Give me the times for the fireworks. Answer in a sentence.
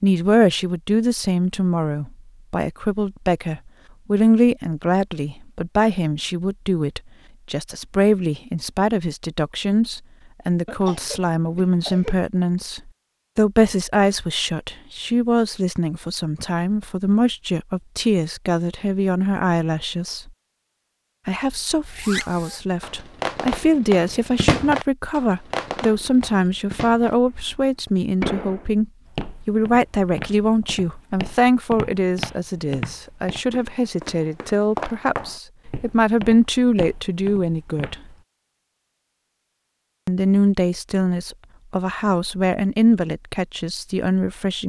You can hear the fireworks from 21.9 to 28.6 s.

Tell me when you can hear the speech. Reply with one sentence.
The speech can be heard from 0.0 to 20.3 s, from 21.2 to 38.0 s and from 40.0 to 44.6 s.